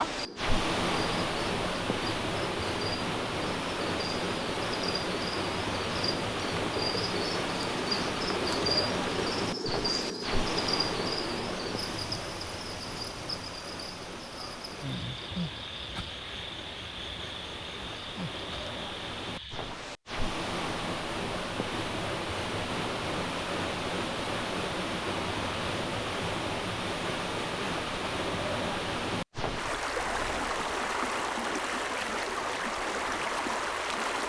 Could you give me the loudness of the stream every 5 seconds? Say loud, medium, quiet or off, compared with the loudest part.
loud, loud, medium, medium, loud, loud, loud.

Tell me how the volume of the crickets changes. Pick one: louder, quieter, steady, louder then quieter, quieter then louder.
louder then quieter.